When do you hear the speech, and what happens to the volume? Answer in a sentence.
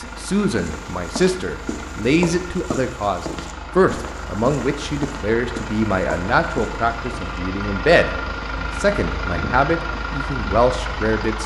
You can hear the speech from 0.0 to 11.4 s, at a steady volume.